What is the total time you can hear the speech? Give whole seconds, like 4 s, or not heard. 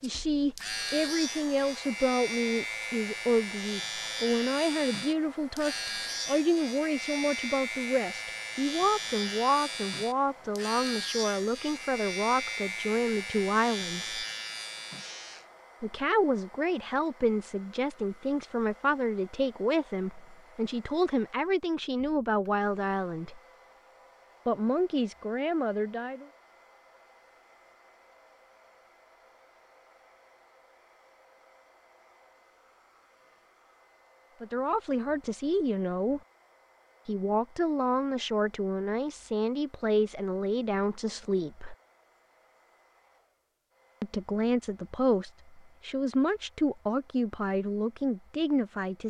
35 s.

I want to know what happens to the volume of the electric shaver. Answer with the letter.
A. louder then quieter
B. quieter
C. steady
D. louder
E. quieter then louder
C.